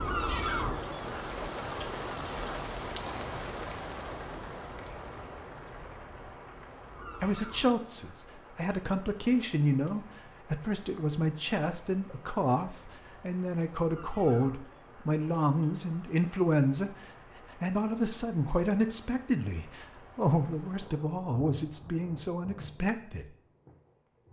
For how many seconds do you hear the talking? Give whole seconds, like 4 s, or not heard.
16 s.